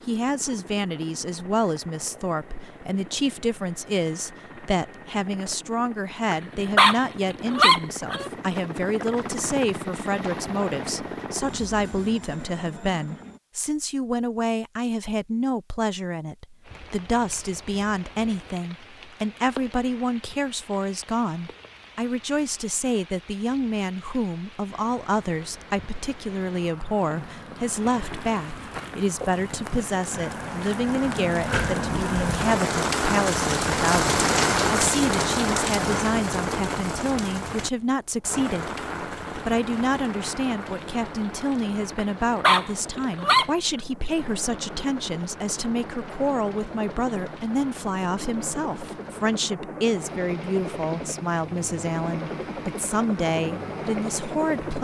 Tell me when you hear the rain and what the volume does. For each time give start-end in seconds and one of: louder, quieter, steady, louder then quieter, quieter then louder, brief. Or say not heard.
16.6-54.7 louder then quieter.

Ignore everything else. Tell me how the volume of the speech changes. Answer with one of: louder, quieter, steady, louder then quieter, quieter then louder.
steady.